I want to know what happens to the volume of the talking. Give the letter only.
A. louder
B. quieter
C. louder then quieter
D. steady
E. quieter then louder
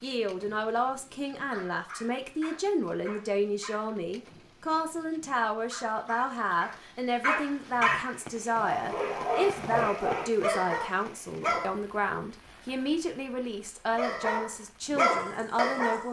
D.